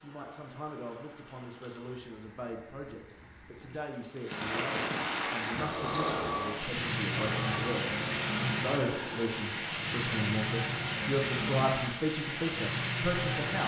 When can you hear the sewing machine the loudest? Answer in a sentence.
The volume of the sewing machine peaks at 6 seconds.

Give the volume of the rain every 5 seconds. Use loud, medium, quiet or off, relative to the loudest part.
medium, loud, loud.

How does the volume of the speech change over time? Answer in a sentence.
The loudness of the speech goes up.